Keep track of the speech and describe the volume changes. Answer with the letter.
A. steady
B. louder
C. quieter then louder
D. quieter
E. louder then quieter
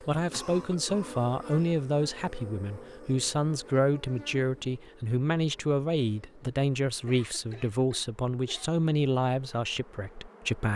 A.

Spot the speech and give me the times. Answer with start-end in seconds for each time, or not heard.
0.0-10.7.